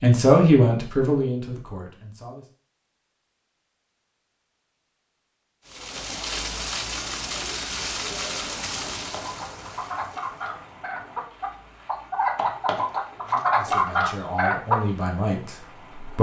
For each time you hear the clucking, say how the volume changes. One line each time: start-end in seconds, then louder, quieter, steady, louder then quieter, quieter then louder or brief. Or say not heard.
9.1-14.8 louder.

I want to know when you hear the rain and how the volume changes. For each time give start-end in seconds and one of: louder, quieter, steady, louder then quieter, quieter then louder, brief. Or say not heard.
5.7-16.1 quieter.